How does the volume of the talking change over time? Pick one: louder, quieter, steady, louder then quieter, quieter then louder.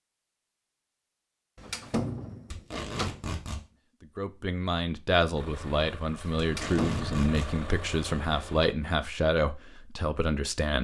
steady.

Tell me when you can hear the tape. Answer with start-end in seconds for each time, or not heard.
2.5-3.6, 6.4-7.5.